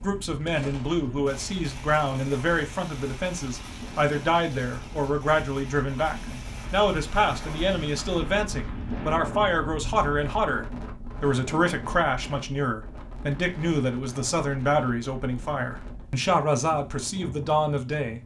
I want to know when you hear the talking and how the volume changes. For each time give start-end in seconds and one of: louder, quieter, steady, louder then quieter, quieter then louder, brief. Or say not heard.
0.0-18.2 steady.